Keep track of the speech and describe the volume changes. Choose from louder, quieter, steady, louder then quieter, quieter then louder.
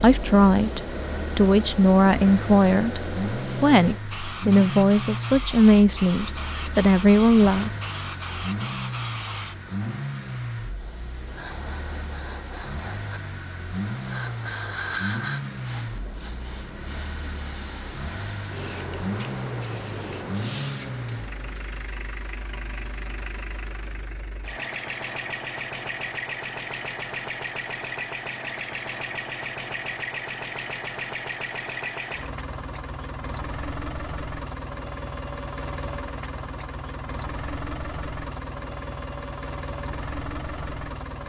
steady.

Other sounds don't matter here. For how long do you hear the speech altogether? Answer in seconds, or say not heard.
8 s.